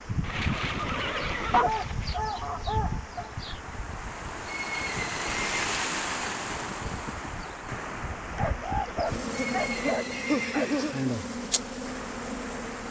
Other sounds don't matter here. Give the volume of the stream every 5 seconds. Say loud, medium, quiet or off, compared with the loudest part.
medium, loud, medium.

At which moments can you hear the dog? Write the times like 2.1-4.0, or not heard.
1.5-3.3, 8.3-10.9.